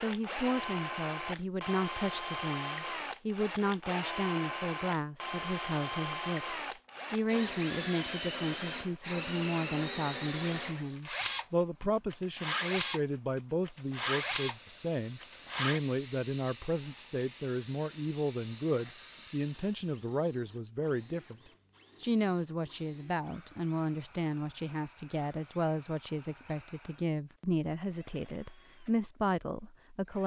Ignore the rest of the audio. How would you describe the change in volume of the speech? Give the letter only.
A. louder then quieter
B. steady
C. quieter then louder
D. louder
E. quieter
B.